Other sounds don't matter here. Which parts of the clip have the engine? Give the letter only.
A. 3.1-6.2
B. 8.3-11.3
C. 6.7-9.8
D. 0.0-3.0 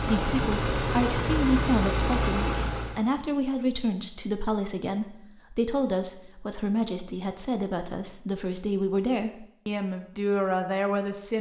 D.